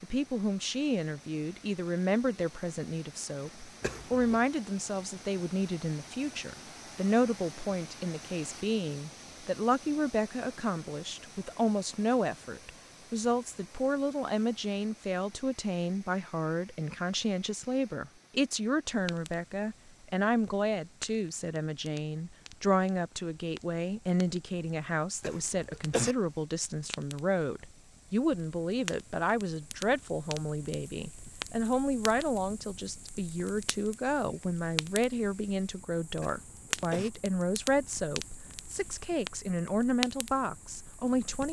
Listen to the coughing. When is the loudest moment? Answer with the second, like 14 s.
26 s.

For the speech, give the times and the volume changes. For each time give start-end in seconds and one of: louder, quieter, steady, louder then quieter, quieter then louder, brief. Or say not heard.
0.0-41.4 steady.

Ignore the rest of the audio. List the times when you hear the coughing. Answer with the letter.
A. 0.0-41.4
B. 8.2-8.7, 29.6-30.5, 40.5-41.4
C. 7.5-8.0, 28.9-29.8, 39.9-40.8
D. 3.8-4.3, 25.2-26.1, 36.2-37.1
D.